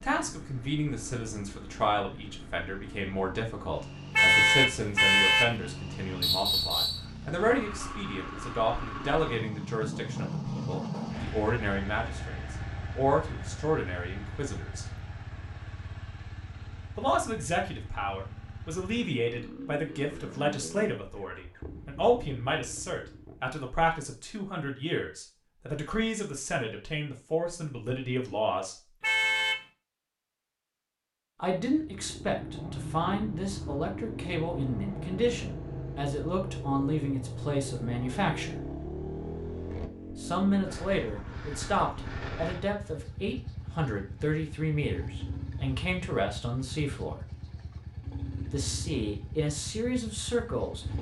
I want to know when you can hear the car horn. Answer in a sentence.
The car horn can be heard from 4.2 to 5.5 s and from 29.0 to 29.6 s.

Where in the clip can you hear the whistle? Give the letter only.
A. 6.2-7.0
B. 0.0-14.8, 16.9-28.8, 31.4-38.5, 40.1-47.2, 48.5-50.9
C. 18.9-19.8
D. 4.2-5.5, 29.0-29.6
A.